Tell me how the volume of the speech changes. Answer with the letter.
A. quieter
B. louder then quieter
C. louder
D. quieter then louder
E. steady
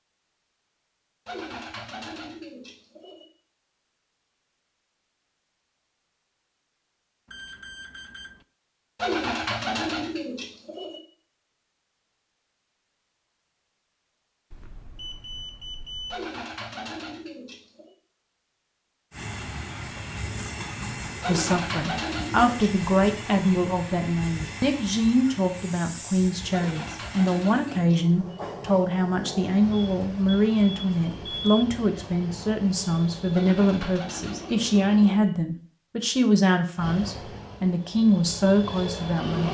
E.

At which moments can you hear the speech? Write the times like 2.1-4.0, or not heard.
21.2-39.4.